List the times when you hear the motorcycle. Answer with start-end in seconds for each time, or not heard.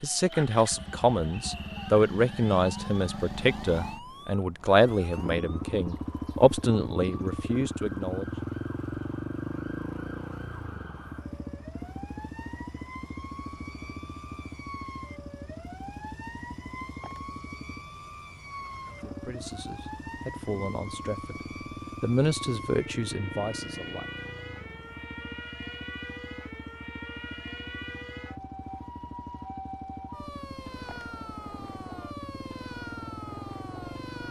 0.0-34.2.